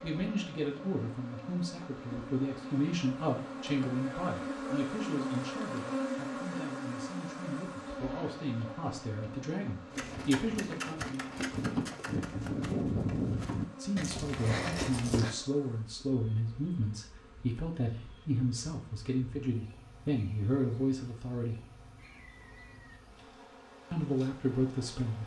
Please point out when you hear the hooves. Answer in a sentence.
The hooves can be heard from 9.9 to 15.3 s.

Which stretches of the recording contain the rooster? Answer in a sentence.
You can hear the rooster from 21.9 to 23.0 s.